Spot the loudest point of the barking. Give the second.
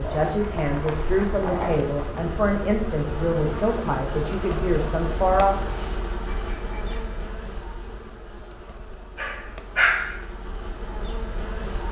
10 s.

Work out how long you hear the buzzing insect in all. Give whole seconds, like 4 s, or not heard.
12 s.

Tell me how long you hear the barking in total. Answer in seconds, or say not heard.
3 s.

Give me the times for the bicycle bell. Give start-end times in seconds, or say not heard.
6.2-7.3.